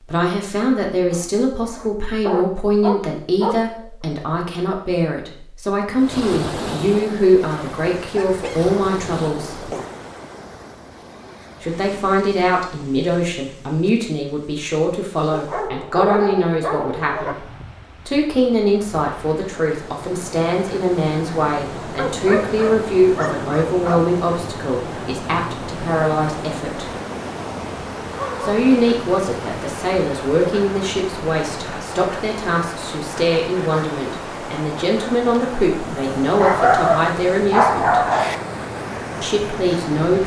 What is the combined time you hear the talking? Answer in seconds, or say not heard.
35 s.